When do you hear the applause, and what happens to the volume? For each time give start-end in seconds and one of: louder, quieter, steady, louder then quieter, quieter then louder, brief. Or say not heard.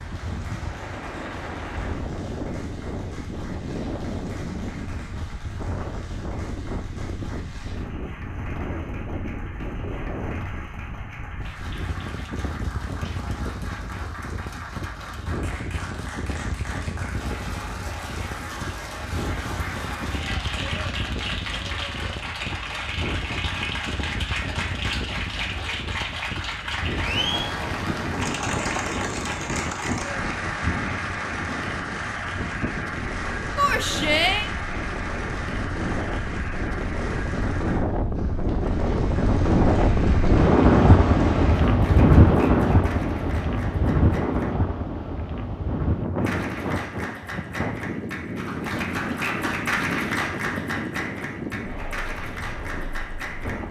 0.0-44.5 louder then quieter
46.2-53.6 louder then quieter.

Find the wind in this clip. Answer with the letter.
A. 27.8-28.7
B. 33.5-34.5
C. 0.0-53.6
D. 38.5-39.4
C.